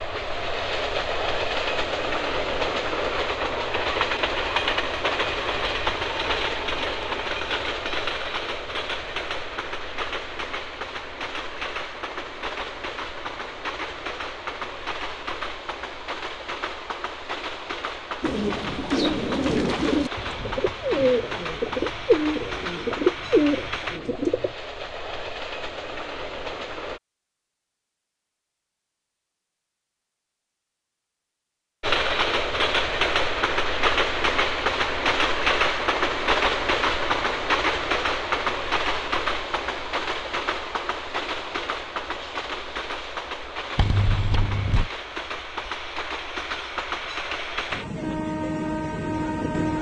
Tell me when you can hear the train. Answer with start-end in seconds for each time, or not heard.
0.0-27.0, 31.8-49.7.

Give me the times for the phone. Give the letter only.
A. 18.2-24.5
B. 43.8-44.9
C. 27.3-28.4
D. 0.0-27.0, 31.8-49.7
B.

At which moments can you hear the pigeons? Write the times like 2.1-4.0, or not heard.
18.2-24.5.